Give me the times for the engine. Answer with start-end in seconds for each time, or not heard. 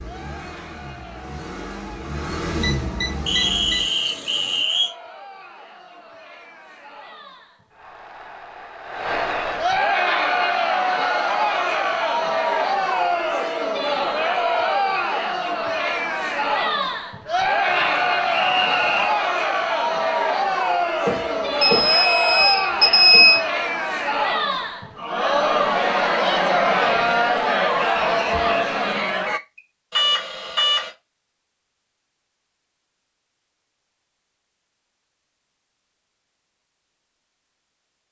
0.0-4.7.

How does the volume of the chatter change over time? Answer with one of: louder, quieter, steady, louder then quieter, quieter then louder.
louder.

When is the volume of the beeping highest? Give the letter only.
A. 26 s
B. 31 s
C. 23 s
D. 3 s
C.